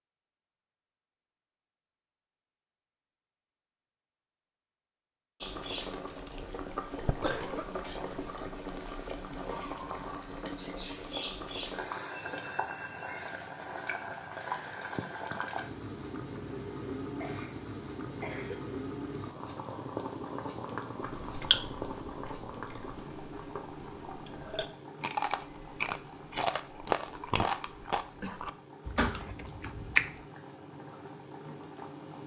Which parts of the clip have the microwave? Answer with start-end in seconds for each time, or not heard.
not heard.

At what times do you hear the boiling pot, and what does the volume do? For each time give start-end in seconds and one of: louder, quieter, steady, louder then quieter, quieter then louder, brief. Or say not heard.
5.4-32.2 quieter.